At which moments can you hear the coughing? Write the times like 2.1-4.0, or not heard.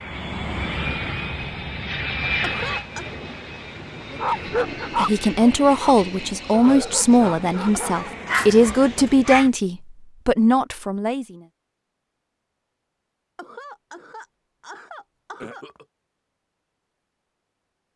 2.4-3.1, 7.8-8.3, 13.3-15.8.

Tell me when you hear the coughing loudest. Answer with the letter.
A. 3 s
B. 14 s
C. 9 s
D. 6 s
A.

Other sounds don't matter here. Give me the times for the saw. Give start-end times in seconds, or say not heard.
not heard.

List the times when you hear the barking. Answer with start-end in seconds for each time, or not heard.
4.2-9.5.